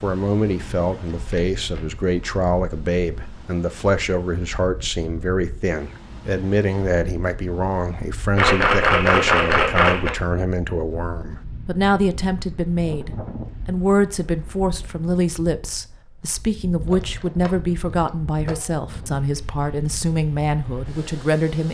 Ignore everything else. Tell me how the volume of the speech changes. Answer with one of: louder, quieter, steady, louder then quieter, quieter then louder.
steady.